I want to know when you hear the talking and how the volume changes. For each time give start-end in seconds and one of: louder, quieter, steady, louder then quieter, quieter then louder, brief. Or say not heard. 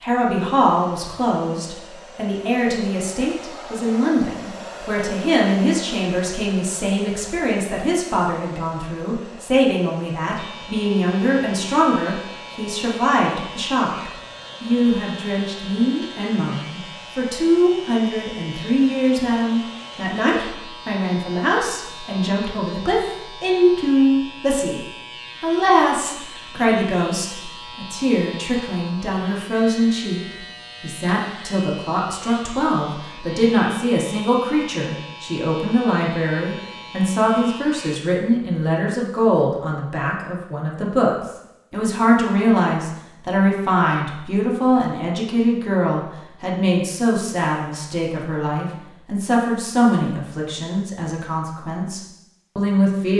0.0-53.1 steady.